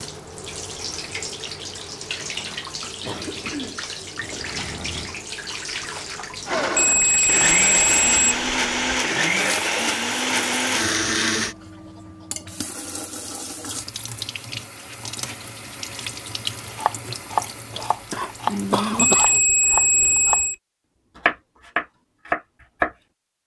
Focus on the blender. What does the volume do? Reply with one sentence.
The volume of the blender stays about the same.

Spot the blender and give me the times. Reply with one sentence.
The blender can be heard from 6.5 to 11.6 s.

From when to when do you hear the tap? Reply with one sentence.
You can hear the tap from 0.0 to 19.4 s.